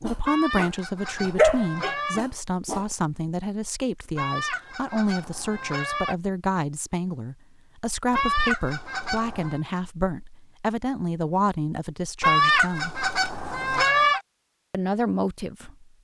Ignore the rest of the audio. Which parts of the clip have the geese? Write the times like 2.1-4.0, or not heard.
0.2-2.2, 4.2-6.2, 8.1-9.6, 12.2-14.2.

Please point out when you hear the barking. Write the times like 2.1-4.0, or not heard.
0.0-3.0.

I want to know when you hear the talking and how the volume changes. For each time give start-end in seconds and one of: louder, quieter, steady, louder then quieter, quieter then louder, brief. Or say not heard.
0.0-13.1 steady
14.7-15.8 brief.